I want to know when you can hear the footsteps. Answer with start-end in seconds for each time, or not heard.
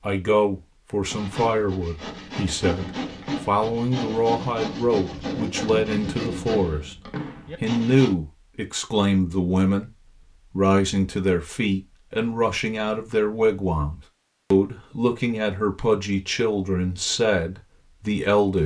not heard.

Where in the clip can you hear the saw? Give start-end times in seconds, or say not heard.
1.1-8.2.